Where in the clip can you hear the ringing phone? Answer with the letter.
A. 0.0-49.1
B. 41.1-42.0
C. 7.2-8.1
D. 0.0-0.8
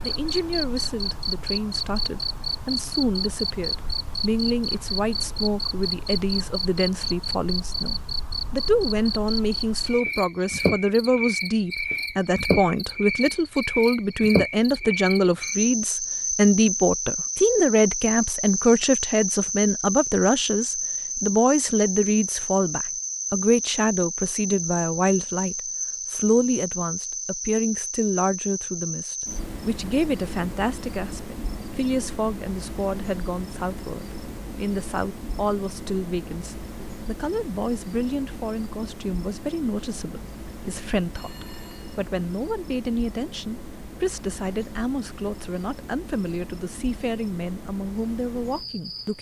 B.